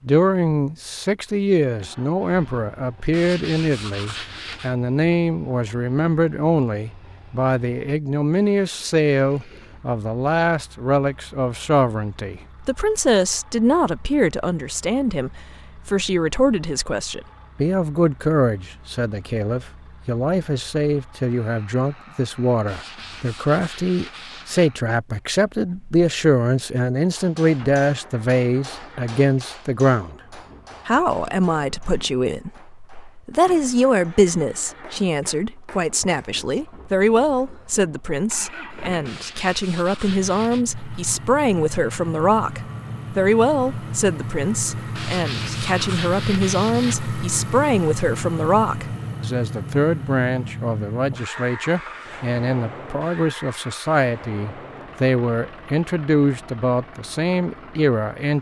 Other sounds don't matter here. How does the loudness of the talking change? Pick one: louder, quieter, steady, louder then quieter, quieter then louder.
steady.